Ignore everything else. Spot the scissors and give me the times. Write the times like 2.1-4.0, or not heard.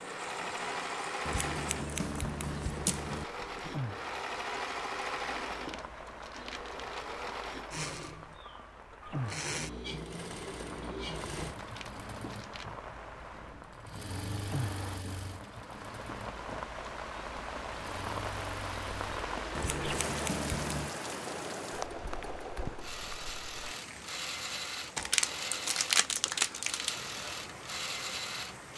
1.2-3.2, 19.6-20.9.